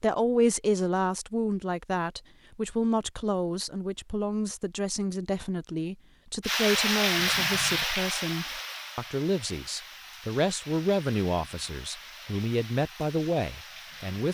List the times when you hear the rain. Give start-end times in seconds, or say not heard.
6.4-14.2.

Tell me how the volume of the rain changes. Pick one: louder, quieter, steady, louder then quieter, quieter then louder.
quieter.